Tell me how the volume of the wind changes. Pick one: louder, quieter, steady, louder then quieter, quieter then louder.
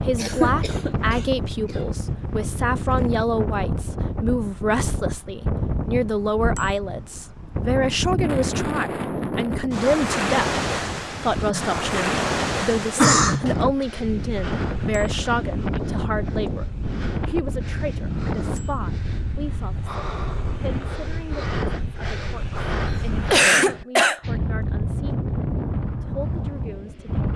steady.